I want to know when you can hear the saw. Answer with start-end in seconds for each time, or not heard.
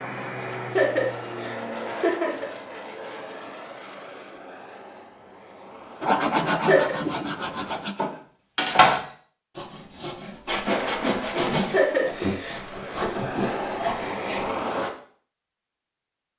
6.0-14.6.